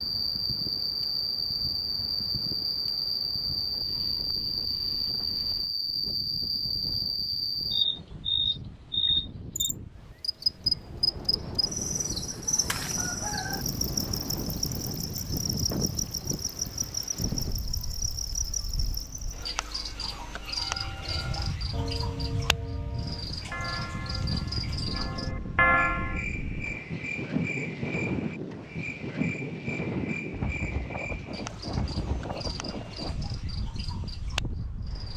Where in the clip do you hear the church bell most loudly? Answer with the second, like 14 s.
26 s.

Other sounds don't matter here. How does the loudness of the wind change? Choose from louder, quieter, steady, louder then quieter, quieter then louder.
louder.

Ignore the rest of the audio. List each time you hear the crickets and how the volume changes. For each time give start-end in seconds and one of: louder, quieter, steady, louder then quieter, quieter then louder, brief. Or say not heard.
0.0-35.1 quieter.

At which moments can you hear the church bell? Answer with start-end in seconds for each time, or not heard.
20.4-26.2.